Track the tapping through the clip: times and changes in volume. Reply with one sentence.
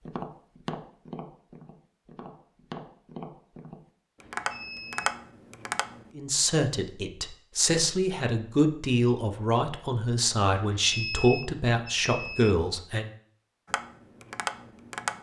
The tapping can be heard from 0.1 to 6.0 s, getting quieter then louder; and briefly from 13.7 to 15.1 s.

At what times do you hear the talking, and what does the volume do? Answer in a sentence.
The talking can be heard from 6.2 to 13.1 s, at a steady volume.